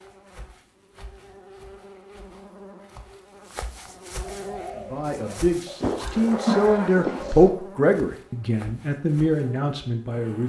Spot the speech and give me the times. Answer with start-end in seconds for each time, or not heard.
4.8-10.4.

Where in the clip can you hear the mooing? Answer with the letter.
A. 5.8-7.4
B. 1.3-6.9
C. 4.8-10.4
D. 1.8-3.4
A.